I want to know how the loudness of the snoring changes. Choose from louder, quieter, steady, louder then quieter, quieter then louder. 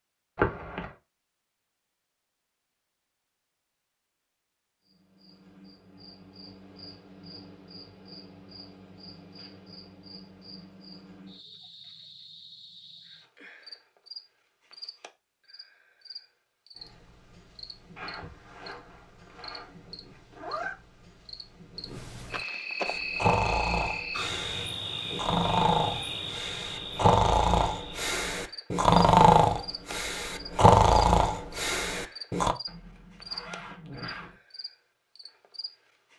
louder.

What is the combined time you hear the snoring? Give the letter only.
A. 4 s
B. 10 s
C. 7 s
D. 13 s
B.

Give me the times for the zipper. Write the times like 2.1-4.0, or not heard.
0.3-0.9, 17.9-20.8, 32.6-34.4.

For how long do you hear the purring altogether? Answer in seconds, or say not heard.
not heard.